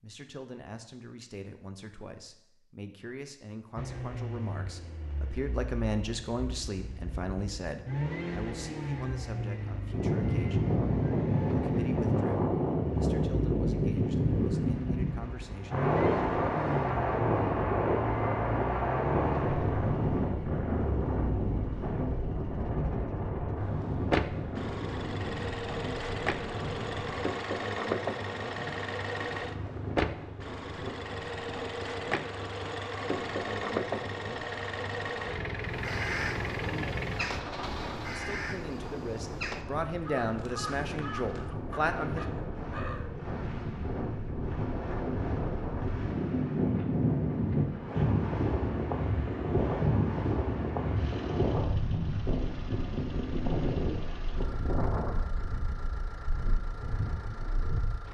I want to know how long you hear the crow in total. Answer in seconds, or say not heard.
8 s.